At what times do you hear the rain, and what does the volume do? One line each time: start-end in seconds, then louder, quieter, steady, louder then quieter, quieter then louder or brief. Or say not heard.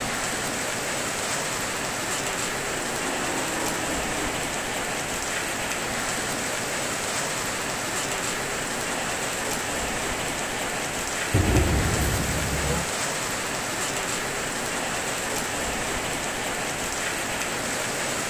0.0-18.2 steady.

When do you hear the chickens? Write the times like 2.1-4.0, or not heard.
not heard.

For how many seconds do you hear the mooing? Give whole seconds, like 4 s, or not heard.
3 s.